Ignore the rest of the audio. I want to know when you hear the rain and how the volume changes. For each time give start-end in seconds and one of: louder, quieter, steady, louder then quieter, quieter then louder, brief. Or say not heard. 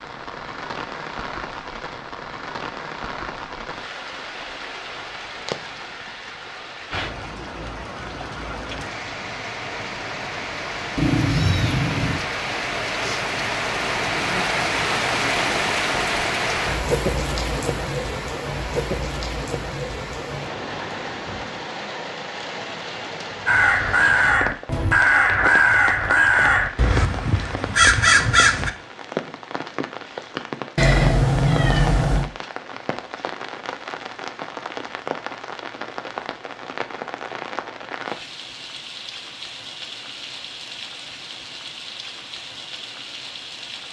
0.0-43.8 louder then quieter.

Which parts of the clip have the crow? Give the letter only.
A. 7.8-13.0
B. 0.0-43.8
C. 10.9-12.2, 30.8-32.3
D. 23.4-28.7
D.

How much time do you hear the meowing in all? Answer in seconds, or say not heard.
3 s.